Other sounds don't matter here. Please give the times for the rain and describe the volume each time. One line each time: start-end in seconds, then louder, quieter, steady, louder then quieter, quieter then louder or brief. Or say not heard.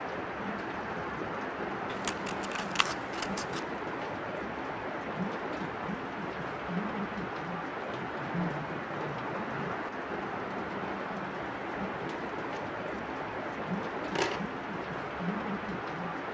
0.0-16.2 steady.